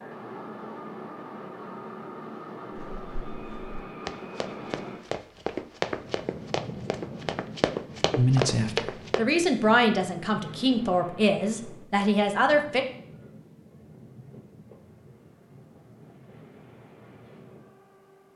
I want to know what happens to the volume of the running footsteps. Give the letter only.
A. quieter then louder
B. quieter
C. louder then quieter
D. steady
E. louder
E.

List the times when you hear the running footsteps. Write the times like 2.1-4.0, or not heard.
2.7-9.2.